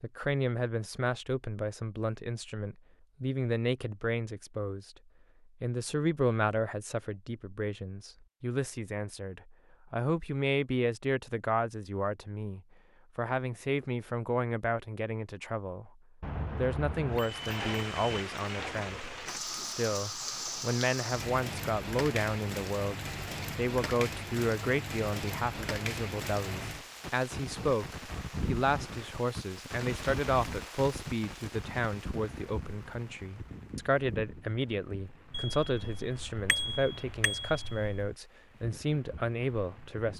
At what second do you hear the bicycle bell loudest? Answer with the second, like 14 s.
37 s.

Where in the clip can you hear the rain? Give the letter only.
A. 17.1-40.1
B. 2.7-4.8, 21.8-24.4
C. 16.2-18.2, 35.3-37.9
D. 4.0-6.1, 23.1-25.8
A.